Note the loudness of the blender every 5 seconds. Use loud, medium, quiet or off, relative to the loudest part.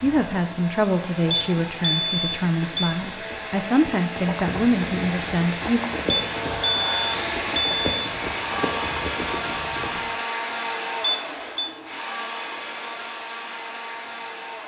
medium, loud, loud.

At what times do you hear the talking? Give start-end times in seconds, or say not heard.
0.0-5.8.